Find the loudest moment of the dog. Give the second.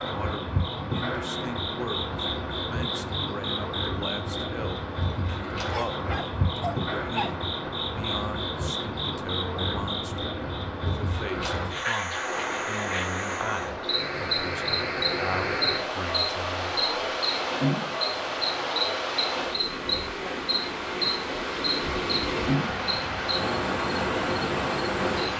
7 s.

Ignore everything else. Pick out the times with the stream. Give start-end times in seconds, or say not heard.
12.1-25.3.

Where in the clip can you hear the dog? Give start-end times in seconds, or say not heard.
5.7-7.3.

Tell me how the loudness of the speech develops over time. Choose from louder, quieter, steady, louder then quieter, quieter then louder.
steady.